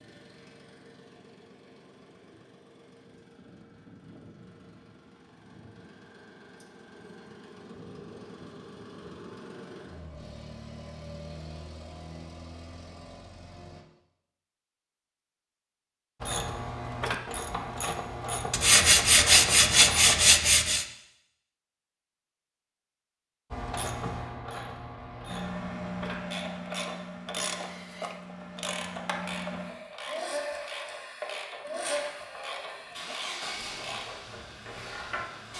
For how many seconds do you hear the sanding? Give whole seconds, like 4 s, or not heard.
2 s.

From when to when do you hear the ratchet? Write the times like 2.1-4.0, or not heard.
16.2-20.1, 23.5-35.2.